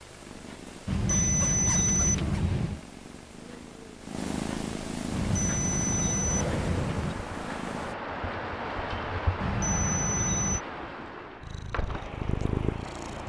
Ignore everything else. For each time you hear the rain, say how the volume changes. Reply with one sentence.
The rain can be heard from 5.1 to 13.2 s, getting louder then quieter.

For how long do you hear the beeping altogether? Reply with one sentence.
The beeping can be heard for 5 seconds in total.